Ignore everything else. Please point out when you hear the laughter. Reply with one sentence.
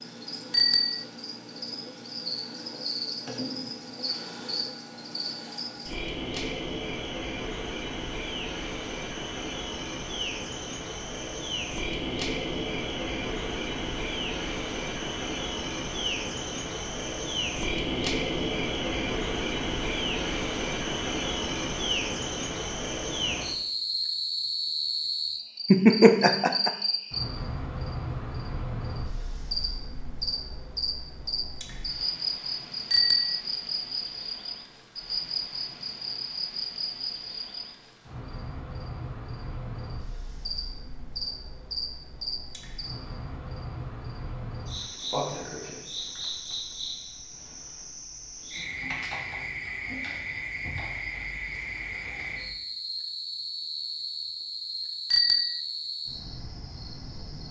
You can hear the laughter from 25.7 to 26.7 s.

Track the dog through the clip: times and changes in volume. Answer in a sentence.
The dog can't be heard in this clip.